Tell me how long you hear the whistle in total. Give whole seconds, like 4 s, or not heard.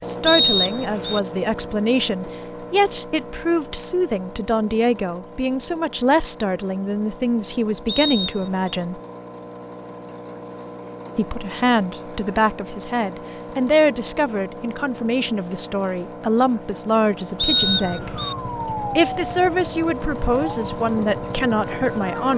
3 s.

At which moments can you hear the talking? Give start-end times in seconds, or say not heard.
0.0-9.0, 11.2-22.3.